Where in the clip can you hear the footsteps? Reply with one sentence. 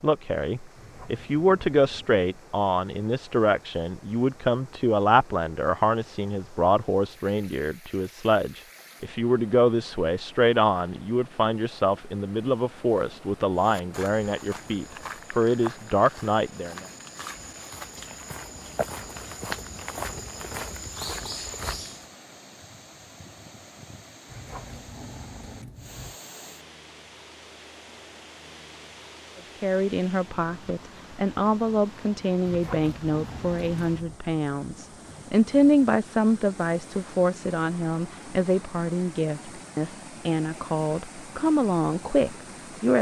You can hear the footsteps from 13.6 to 22.1 s.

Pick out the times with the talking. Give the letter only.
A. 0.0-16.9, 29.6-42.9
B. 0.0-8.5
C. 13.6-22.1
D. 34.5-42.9
A.